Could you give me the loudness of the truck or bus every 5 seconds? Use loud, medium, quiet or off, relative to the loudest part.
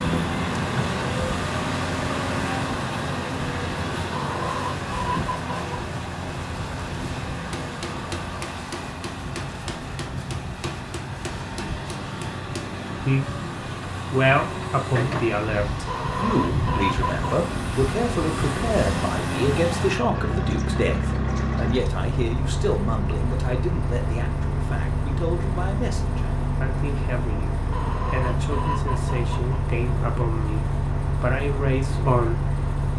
loud, medium, medium, loud, loud, loud, loud.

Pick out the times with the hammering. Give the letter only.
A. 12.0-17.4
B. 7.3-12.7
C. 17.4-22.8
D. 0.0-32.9
B.